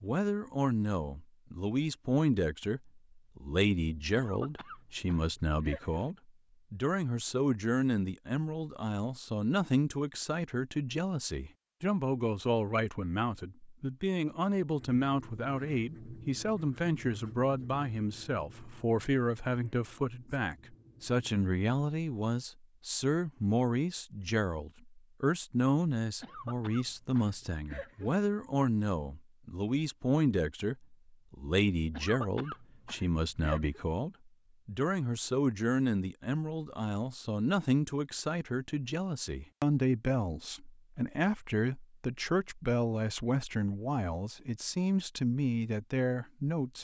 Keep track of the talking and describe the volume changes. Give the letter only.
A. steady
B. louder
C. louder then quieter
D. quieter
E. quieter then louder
A.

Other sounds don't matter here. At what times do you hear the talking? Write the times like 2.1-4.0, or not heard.
0.0-46.8.